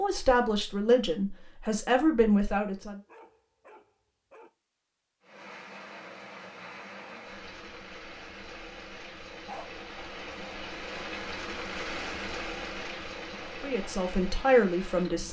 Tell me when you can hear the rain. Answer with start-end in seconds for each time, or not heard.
5.2-15.2.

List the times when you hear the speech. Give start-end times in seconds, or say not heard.
0.0-3.0, 13.6-15.2.